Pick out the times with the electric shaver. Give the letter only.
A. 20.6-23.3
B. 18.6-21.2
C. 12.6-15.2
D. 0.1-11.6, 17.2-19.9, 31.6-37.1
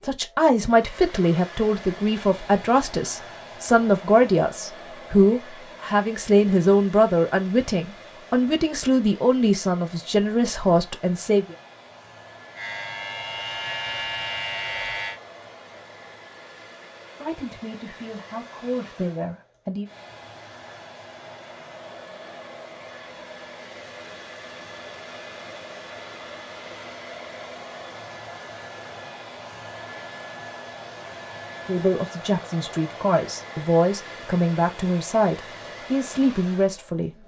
C.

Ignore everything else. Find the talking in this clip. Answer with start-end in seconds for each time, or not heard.
0.1-11.6, 17.2-19.9, 31.6-37.1.